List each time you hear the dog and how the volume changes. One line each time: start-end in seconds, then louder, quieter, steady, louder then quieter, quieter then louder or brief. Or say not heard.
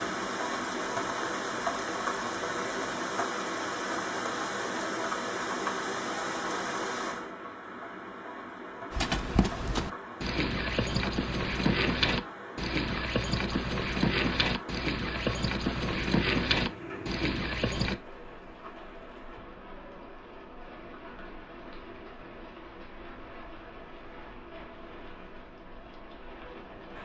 not heard.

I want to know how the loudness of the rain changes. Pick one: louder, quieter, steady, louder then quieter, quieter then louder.
quieter.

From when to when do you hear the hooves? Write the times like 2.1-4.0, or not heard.
8.9-18.0.